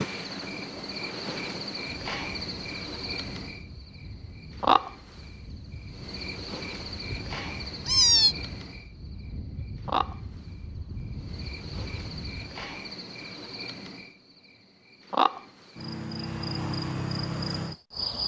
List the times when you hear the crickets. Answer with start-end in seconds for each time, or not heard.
0.0-3.6, 4.5-8.9, 9.8-14.2, 15.1-18.2.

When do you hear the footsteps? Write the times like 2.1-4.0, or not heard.
not heard.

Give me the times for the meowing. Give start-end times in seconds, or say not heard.
7.0-8.3.